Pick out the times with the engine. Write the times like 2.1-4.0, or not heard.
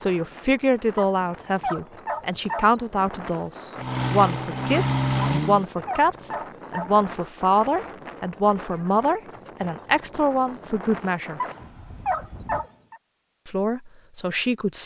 3.8-5.7.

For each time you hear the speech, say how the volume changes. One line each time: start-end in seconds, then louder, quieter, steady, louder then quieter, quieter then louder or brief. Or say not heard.
0.0-11.4 steady
13.4-14.8 brief.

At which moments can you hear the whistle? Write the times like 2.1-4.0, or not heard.
not heard.